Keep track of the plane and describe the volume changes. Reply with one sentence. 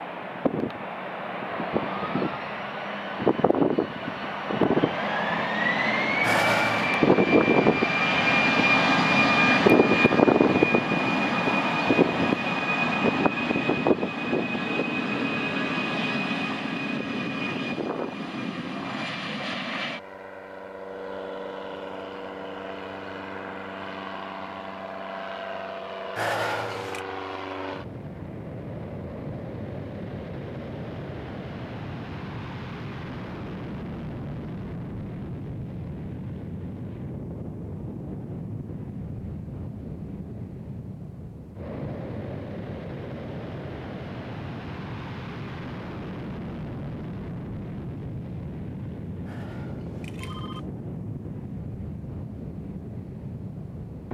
The volume of the plane goes down.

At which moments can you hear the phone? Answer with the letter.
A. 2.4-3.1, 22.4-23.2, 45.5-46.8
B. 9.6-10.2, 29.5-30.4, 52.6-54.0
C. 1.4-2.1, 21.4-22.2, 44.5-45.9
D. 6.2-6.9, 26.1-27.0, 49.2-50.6
D.